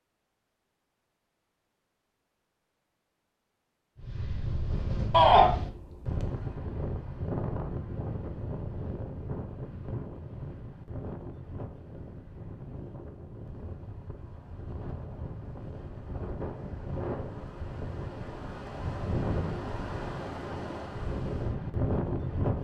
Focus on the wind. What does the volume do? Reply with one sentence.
The loudness of the wind goes down, then up.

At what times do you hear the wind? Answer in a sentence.
You can hear the wind from 4.0 to 22.5 s.